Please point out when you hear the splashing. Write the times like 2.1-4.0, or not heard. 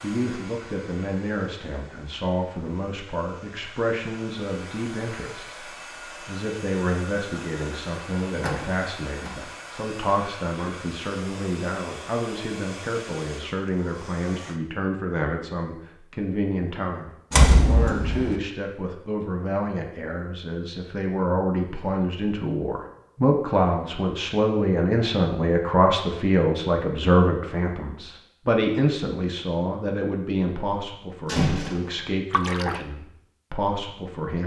32.3-32.9.